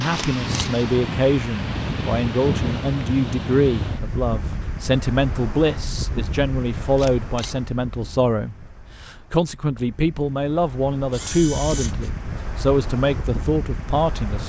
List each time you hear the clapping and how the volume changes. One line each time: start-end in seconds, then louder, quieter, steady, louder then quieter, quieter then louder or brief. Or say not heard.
not heard.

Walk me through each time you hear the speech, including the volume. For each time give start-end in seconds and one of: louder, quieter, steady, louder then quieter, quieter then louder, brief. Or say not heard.
0.0-14.4 steady.